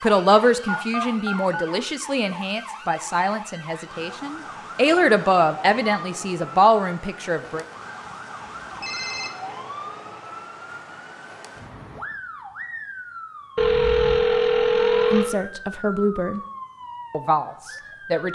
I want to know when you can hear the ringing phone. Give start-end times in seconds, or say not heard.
0.7-1.6, 7.5-9.3, 13.6-15.3.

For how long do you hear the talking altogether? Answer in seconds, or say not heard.
10 s.